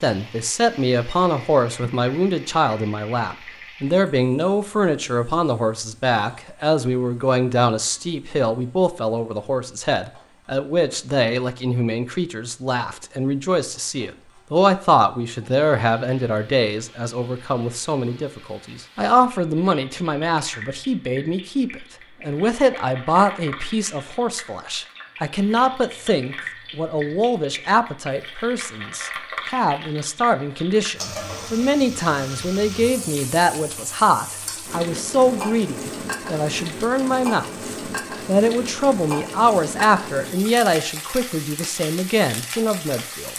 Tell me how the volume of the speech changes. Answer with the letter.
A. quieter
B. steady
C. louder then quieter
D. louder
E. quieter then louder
B.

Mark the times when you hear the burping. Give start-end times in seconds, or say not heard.
not heard.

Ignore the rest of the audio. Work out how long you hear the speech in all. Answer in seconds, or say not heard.
43 s.